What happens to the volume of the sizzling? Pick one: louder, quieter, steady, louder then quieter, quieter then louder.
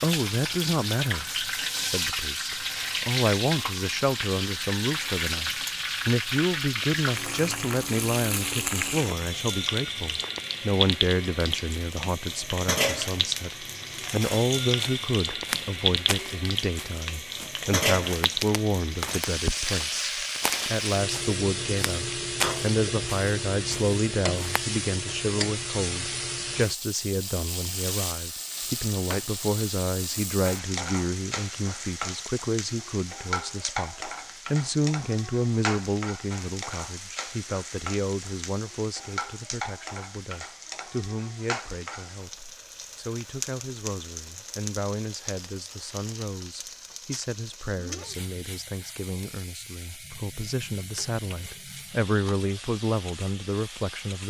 quieter.